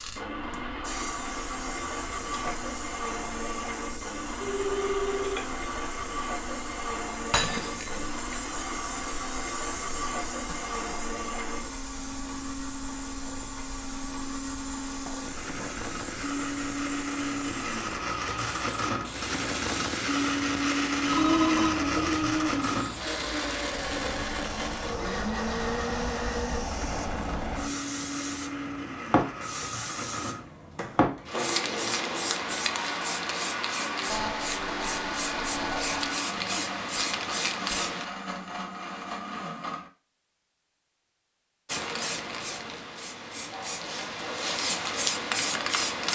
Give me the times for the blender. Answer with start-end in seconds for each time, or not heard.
0.1-39.9.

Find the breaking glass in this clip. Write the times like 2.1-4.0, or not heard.
7.3-8.3.